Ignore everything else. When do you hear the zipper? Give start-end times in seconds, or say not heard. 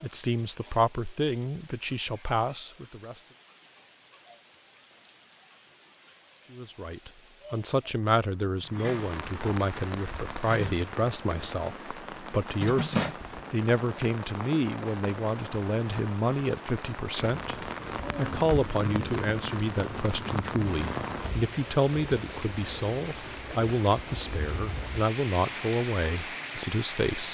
not heard.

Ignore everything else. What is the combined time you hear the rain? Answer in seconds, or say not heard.
27 s.